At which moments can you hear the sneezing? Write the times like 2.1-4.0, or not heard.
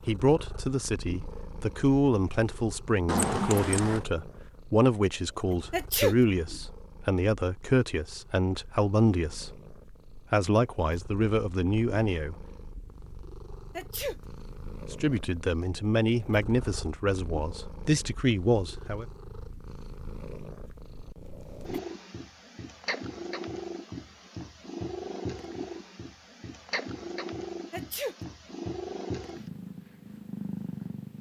5.7-6.2, 13.8-14.2, 27.7-28.1.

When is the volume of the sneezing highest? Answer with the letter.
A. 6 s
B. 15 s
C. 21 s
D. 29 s
A.